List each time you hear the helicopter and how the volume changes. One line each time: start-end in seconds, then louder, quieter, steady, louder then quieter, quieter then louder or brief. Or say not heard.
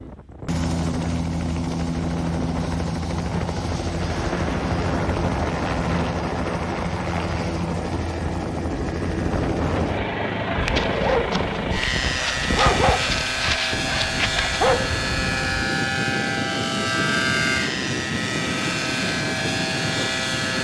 0.0-20.5 steady.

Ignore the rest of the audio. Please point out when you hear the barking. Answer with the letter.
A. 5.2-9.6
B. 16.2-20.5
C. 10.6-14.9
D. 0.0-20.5
C.